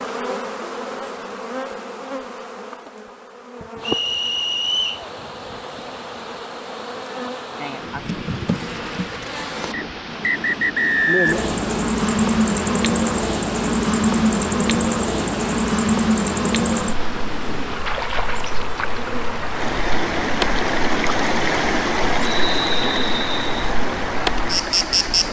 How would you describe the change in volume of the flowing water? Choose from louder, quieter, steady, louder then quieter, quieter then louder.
louder.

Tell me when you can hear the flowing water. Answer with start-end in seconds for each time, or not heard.
3.8-25.2.